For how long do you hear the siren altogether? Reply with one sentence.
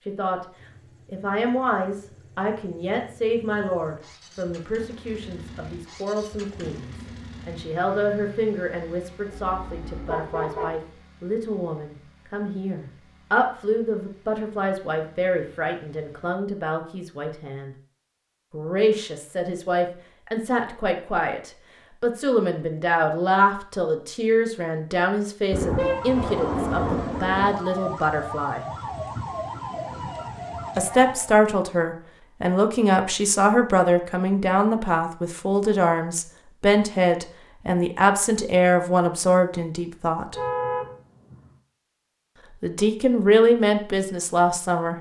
You can hear the siren for 6 seconds altogether.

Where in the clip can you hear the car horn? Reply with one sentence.
The car horn can be heard from 9.3 to 10.8 s, from 25.5 to 27.6 s and from 40.3 to 41.5 s.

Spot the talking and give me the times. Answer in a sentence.
The talking can be heard from 0.1 to 0.5 s, from 1.1 to 17.8 s, from 18.5 to 28.6 s, from 30.8 to 40.4 s and from 42.6 to 44.9 s.